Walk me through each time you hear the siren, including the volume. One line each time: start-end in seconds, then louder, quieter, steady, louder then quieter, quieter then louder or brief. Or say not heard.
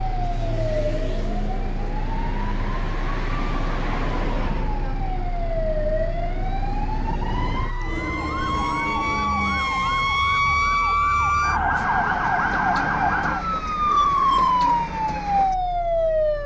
0.0-16.4 louder.